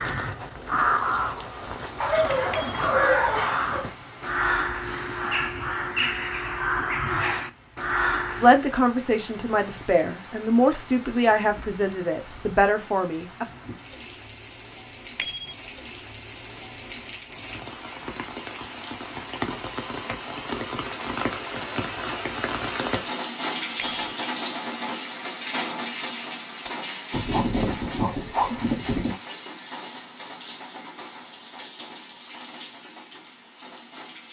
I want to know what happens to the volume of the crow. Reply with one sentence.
The volume of the crow stays about the same.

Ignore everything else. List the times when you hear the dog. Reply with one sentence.
The dog can be heard from 2.0 to 3.9 s and from 27.1 to 29.1 s.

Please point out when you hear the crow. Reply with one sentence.
The crow can be heard from 0.0 to 8.7 s.